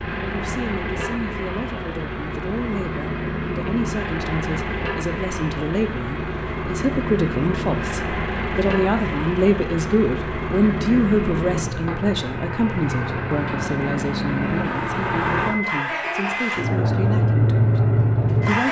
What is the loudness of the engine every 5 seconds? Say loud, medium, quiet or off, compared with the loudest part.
medium, medium, medium, loud.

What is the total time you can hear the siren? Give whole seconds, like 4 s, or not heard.
not heard.